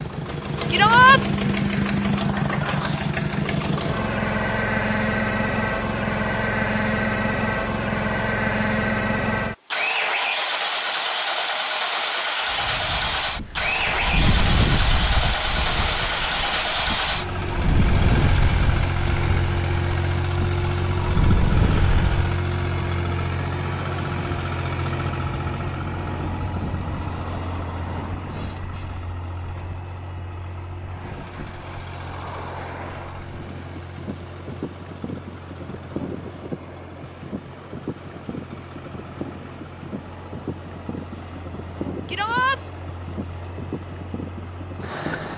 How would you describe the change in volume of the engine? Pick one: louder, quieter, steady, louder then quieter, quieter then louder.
quieter.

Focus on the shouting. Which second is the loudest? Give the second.
1 s.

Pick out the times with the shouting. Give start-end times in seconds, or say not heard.
0.7-1.2, 42.0-42.6.